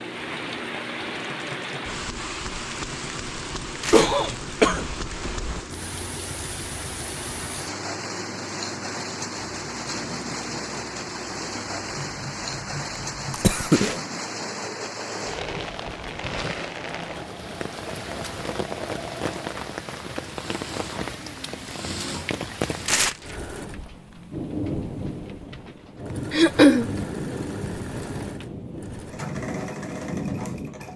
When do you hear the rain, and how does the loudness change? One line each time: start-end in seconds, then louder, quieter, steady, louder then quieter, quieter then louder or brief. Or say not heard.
0.0-30.9 steady.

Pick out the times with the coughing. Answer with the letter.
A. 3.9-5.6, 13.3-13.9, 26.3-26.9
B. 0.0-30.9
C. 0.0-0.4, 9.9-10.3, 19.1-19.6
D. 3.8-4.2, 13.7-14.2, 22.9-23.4
A.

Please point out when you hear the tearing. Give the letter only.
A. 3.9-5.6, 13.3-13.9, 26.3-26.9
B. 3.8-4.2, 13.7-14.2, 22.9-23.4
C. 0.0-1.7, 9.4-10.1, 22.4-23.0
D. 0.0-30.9
B.